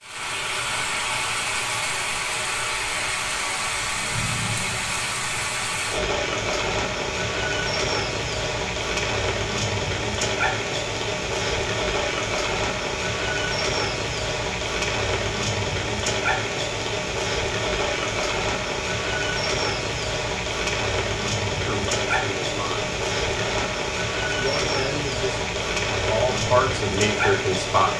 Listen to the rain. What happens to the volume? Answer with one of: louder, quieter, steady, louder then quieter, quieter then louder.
steady.